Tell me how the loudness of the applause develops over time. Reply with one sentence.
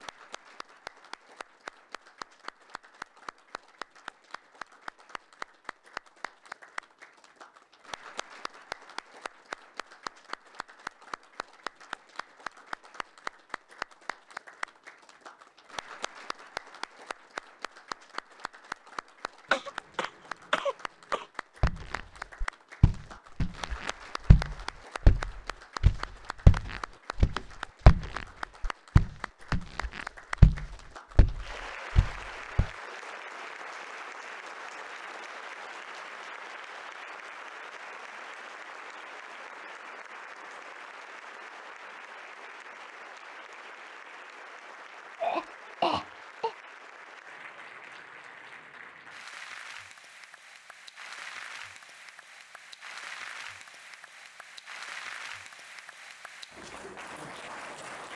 The volume of the applause stays about the same.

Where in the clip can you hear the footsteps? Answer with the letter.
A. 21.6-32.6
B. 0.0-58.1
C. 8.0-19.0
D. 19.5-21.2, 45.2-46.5
A.